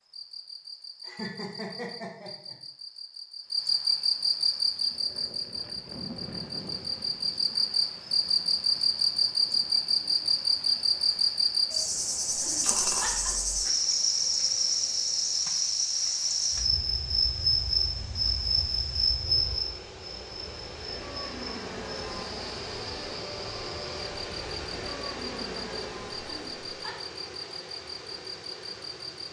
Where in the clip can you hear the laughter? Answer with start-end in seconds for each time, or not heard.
1.1-2.5, 12.3-13.3, 26.4-26.9.